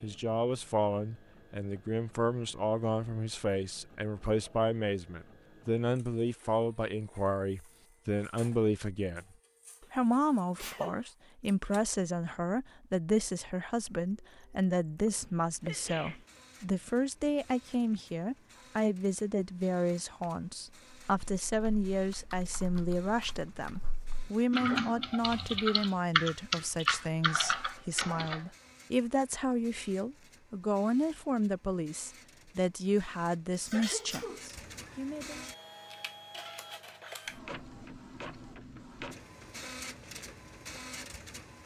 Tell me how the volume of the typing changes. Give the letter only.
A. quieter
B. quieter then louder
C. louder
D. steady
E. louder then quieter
C.